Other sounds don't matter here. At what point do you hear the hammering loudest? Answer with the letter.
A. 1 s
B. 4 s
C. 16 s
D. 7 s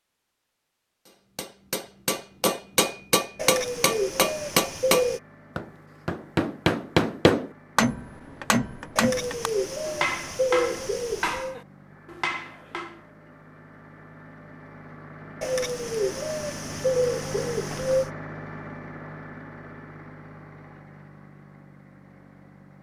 D.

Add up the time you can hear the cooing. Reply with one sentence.
You can hear the cooing for 7 seconds altogether.